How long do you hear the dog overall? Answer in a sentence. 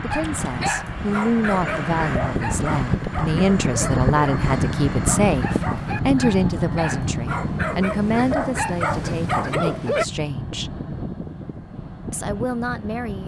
You can hear the dog for 10 seconds altogether.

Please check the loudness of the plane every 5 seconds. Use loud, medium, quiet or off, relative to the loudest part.
loud, loud, medium.